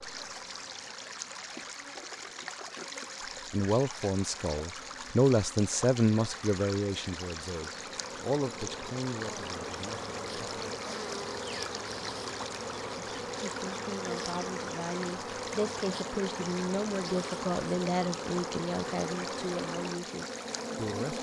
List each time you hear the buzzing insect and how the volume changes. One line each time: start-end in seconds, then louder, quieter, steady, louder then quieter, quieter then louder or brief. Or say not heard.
0.0-21.1 louder.